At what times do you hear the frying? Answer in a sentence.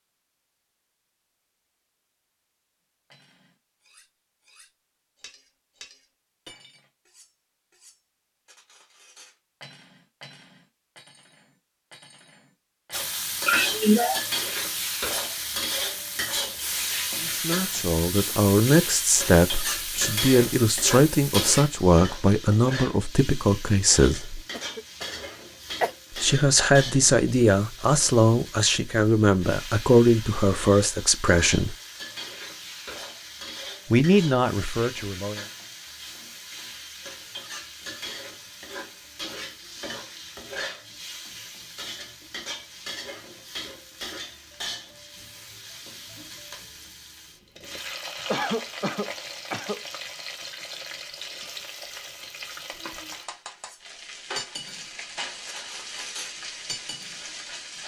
You can hear the frying from 12.9 to 57.8 s.